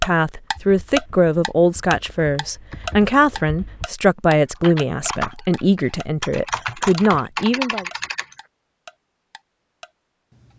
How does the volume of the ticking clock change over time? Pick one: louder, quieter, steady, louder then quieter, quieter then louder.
quieter.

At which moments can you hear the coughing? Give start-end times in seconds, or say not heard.
not heard.